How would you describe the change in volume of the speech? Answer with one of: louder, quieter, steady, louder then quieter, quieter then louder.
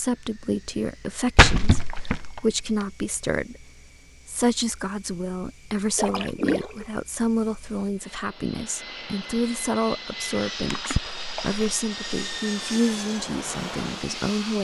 steady.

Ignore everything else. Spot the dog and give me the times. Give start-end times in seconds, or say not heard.
not heard.